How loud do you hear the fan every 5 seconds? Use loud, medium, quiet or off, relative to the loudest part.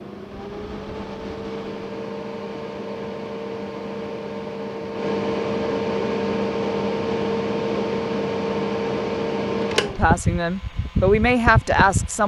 medium, loud, loud.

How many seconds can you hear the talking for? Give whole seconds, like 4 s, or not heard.
2 s.